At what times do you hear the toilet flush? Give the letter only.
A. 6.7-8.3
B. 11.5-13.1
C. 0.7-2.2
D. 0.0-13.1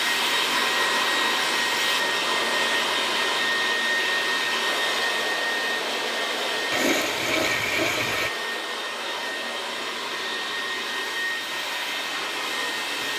A.